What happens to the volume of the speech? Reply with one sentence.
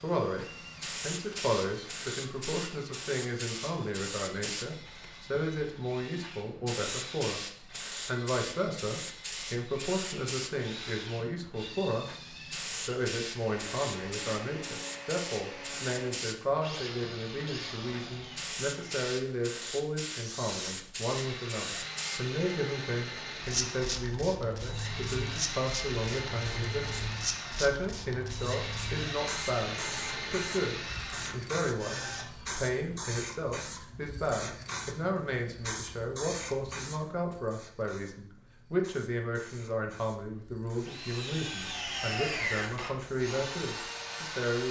The volume of the speech stays about the same.